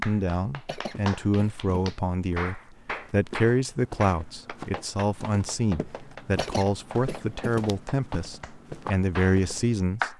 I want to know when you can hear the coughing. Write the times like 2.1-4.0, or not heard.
0.7-1.9, 6.3-7.5.